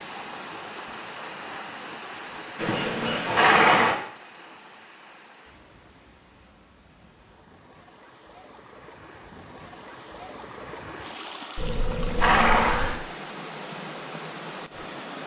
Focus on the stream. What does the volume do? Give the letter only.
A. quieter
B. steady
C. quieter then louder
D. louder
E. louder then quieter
C.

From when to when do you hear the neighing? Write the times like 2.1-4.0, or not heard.
2.5-4.0, 11.6-12.9.